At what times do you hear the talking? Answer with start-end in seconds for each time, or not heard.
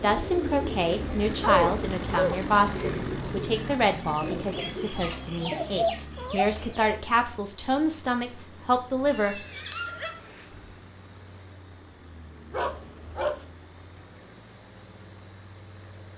0.0-9.4.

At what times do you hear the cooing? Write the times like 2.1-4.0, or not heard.
0.0-7.0.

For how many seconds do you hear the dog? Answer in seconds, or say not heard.
5 s.